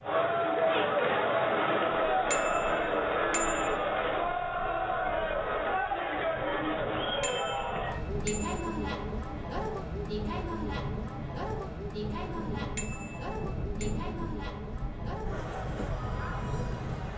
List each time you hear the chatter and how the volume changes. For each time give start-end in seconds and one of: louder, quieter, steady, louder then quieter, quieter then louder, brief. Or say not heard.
0.0-17.1 quieter.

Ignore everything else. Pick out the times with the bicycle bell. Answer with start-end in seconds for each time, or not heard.
2.3-3.8, 7.2-8.9, 12.8-13.9.